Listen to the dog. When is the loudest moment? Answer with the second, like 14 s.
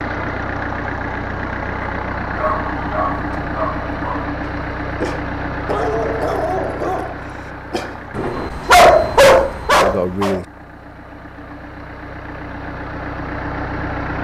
9 s.